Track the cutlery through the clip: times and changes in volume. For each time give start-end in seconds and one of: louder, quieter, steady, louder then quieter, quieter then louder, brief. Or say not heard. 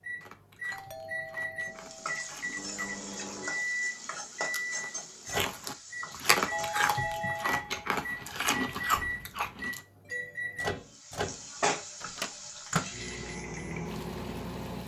not heard.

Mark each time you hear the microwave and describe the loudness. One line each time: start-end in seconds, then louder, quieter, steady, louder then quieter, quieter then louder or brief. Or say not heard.
0.0-14.8 steady.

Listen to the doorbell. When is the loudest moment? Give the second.
7 s.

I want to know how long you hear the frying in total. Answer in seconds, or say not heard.
10 s.